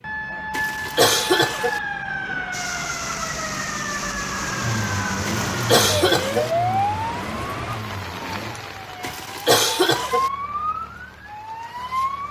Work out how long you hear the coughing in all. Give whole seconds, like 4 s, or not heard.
4 s.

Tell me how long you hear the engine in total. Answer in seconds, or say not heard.
4 s.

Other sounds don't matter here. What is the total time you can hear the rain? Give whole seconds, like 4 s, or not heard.
10 s.